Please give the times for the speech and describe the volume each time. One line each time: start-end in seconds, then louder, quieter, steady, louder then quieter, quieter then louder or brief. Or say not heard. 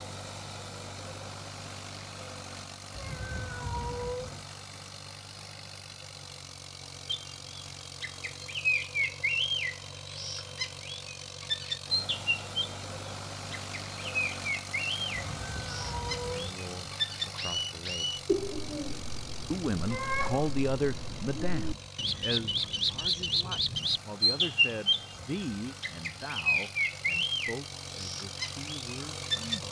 16.1-18.2 brief
19.5-29.6 quieter.